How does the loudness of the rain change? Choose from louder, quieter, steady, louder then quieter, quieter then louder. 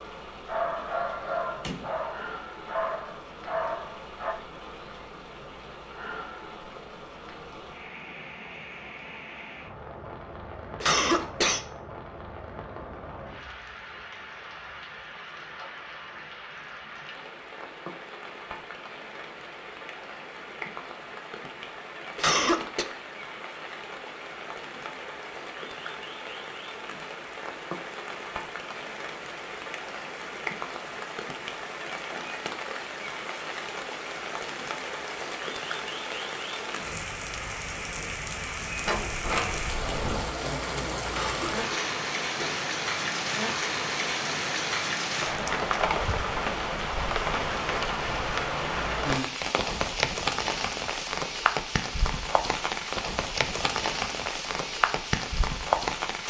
louder.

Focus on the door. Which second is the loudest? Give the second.
39 s.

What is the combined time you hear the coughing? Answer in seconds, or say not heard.
3 s.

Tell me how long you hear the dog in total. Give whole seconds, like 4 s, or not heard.
4 s.